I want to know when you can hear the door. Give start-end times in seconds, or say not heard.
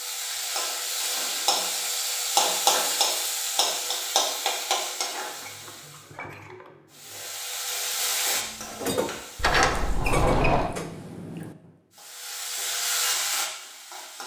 9.3-10.7.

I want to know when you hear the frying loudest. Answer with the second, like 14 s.
3 s.